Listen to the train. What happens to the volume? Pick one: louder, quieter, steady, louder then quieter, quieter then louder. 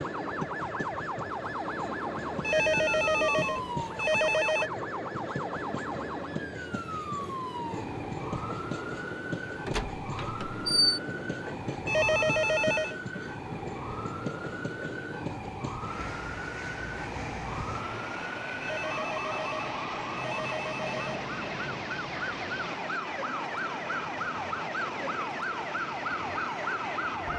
steady.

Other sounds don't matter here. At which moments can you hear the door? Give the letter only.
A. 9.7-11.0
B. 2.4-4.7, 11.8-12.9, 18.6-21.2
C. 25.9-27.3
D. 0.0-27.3
A.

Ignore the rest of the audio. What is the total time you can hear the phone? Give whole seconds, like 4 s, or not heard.
6 s.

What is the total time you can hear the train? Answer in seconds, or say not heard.
27 s.